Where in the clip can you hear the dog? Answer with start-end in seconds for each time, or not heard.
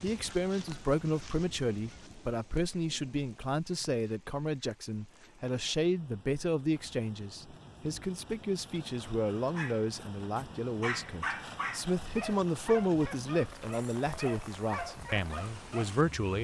9.5-15.9.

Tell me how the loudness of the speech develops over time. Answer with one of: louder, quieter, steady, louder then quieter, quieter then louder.
steady.